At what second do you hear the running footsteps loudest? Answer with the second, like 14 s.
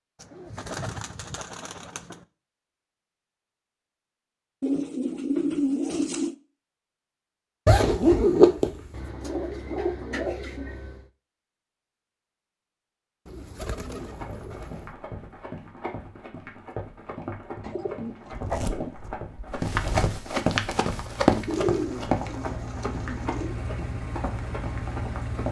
21 s.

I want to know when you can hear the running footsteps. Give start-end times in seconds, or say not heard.
13.8-25.4.